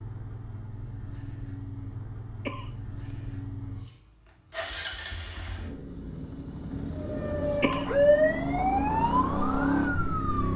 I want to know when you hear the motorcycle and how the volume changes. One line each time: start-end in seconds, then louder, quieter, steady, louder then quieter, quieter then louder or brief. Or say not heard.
0.0-10.5 louder.